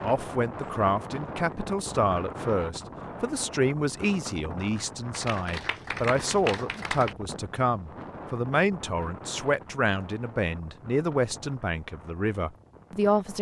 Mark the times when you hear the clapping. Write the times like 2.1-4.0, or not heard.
5.1-7.2.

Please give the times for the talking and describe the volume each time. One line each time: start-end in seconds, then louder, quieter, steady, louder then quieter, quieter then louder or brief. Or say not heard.
0.0-13.3 steady.